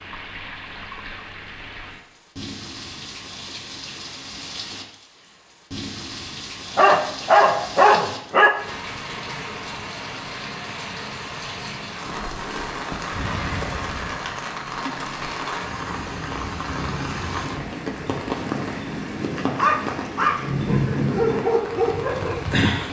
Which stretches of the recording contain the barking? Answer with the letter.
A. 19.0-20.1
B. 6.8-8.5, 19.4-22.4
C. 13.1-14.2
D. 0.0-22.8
B.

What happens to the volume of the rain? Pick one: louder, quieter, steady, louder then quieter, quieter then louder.
louder.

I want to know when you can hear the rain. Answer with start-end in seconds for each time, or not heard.
0.0-22.8.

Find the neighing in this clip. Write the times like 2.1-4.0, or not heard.
13.1-14.2.